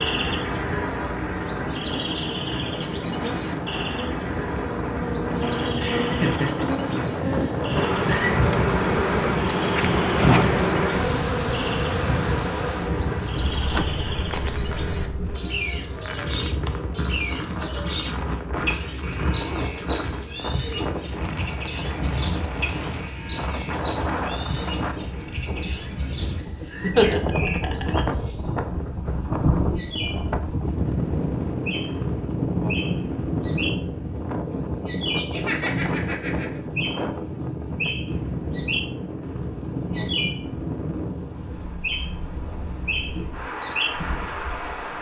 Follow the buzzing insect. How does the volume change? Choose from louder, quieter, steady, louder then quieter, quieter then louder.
louder then quieter.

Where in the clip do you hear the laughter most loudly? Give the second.
27 s.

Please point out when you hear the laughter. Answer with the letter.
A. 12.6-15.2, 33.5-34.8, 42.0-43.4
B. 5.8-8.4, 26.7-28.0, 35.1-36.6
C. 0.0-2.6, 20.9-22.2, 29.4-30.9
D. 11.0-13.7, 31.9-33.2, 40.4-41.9
B.